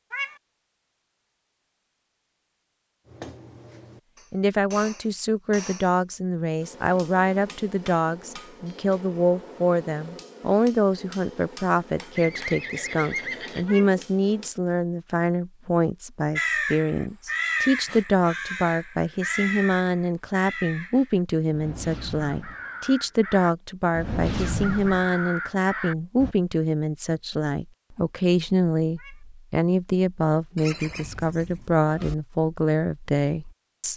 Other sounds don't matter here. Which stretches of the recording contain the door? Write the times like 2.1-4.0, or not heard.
not heard.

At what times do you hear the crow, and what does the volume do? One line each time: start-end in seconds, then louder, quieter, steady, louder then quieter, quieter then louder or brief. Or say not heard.
16.4-26.4 quieter then louder.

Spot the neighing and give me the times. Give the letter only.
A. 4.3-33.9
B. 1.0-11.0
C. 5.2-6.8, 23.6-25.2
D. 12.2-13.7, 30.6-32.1
D.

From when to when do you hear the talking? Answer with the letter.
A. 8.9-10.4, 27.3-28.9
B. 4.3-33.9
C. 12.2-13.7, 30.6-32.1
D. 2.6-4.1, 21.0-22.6
B.